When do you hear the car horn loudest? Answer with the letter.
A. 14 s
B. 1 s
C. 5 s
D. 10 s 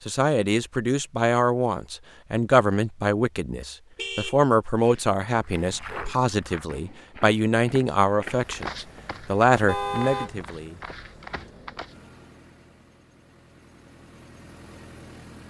D.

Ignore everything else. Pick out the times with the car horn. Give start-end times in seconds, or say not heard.
4.0-5.2, 9.7-10.3.